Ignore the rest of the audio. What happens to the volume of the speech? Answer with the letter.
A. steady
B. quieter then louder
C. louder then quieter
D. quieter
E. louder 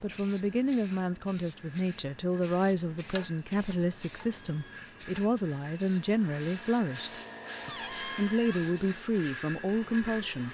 A.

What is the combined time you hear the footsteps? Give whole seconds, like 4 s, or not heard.
not heard.